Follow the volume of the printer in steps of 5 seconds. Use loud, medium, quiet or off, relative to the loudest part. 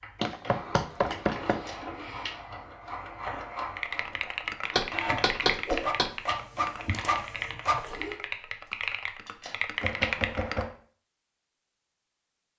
medium, loud, off.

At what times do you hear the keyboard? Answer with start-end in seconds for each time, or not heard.
3.8-10.7.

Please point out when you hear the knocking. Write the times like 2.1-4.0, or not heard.
0.2-1.6, 4.7-6.2, 9.8-10.8.